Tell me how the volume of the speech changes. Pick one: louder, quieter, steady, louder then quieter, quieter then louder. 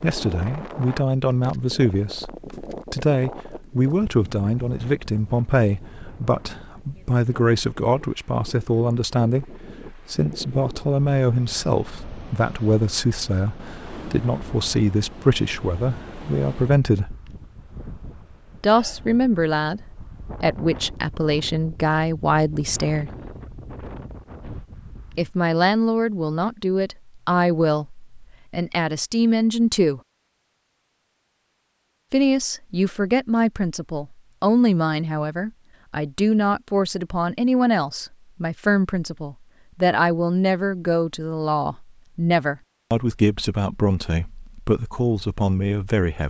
steady.